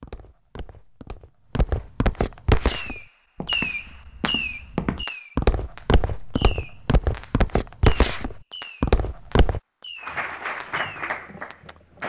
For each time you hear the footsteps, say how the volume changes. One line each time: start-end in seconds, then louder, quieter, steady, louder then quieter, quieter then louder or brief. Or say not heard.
0.0-9.6 louder.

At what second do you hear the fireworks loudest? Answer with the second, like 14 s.
4 s.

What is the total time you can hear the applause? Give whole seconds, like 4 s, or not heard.
2 s.